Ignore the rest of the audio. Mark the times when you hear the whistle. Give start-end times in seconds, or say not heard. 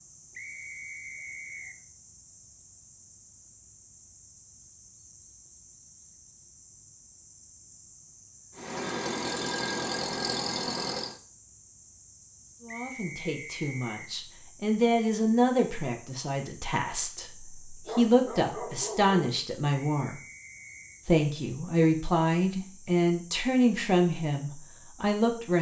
0.3-1.8, 12.7-14.2, 19.8-21.0.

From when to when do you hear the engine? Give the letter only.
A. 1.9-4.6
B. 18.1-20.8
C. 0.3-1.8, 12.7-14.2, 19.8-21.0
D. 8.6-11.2
D.